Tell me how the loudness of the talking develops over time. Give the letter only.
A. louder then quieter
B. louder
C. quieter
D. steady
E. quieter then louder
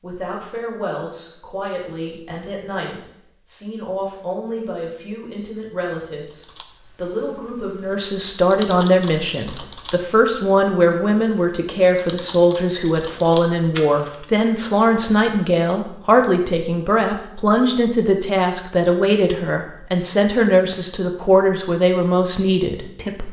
B.